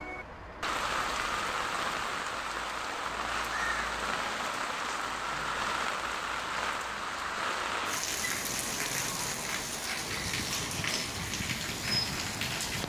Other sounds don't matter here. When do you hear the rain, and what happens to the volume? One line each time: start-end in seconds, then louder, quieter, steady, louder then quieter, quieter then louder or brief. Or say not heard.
0.0-12.8 steady.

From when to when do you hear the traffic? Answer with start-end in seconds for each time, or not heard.
0.0-12.8.